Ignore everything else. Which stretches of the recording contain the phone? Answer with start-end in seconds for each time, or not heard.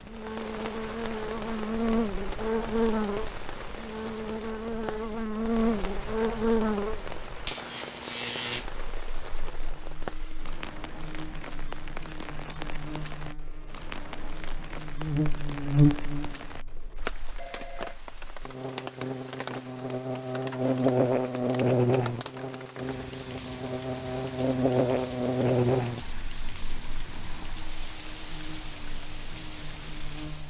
16.9-18.3.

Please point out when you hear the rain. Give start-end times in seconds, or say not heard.
0.0-30.4.